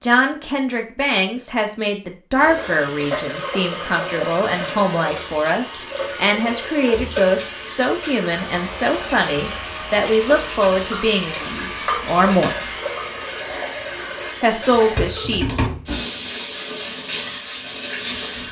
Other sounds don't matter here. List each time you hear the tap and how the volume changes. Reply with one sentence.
The tap can be heard from 2.4 to 18.4 s, at a steady volume.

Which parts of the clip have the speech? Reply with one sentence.
The speech can be heard from 0.0 to 12.5 s and from 14.4 to 15.6 s.